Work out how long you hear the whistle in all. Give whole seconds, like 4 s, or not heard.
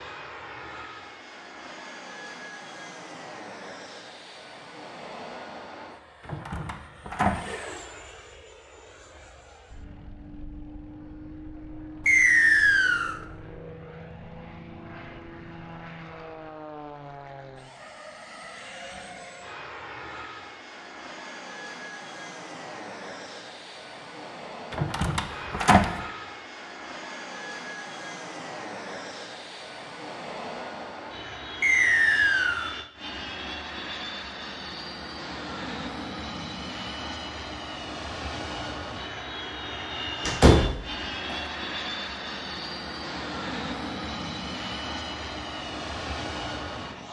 2 s.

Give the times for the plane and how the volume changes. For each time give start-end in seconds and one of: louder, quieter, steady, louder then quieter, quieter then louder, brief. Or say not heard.
0.0-47.0 louder.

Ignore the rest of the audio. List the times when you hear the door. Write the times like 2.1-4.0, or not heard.
6.2-7.5, 24.7-25.9, 40.2-40.9.